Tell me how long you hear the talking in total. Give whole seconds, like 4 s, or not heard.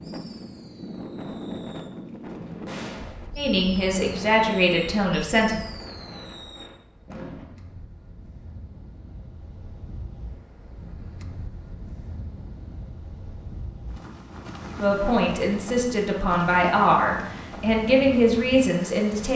7 s.